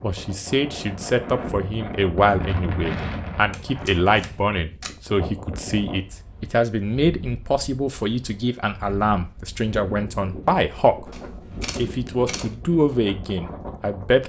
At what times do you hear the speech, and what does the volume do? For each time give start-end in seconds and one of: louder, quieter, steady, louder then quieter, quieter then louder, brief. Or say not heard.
0.0-14.2 steady.